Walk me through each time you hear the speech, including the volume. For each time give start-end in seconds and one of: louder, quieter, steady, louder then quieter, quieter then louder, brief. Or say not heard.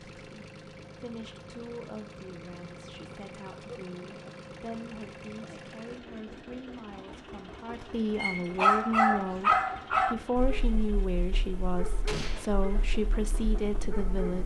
0.0-14.4 louder.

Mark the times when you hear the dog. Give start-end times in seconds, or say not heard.
8.2-14.4.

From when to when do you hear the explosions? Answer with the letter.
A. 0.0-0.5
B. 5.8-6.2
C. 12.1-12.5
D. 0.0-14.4
C.